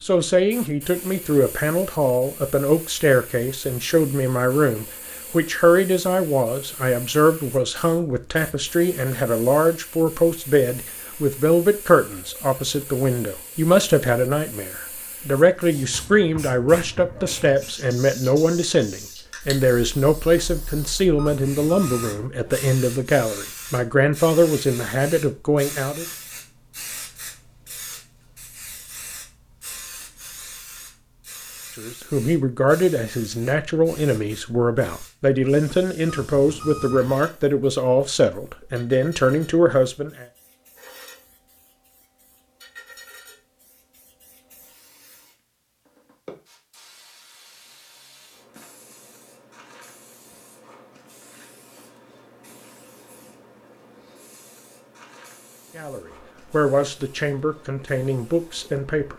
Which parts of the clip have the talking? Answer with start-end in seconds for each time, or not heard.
0.0-26.1, 31.8-40.2, 55.8-59.1.